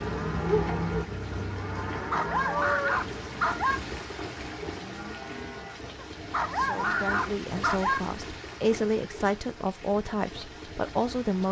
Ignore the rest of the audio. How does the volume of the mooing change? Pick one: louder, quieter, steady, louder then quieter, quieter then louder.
quieter.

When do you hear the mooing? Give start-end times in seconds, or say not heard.
0.0-7.2.